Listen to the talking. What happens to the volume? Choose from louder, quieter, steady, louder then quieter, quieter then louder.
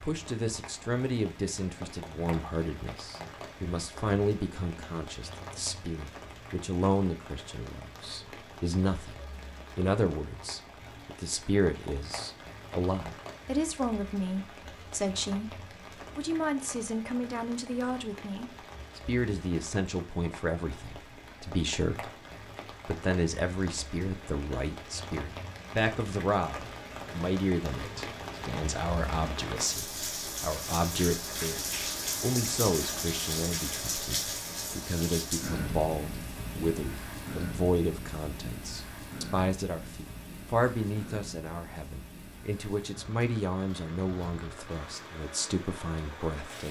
steady.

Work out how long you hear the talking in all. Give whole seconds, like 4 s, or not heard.
46 s.